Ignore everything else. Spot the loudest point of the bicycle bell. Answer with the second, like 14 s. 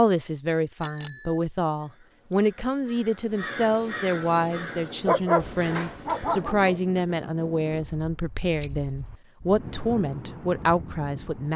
9 s.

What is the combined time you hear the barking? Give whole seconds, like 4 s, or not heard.
2 s.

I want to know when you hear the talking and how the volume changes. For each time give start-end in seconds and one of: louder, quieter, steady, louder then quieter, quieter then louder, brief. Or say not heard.
0.0-11.5 steady.